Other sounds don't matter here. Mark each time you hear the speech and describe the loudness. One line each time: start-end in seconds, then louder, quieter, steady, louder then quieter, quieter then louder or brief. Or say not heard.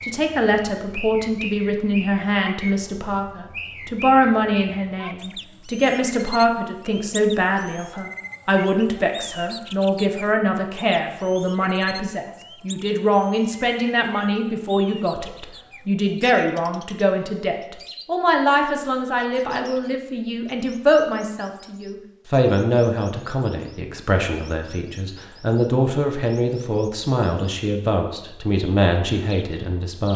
0.0-30.1 steady.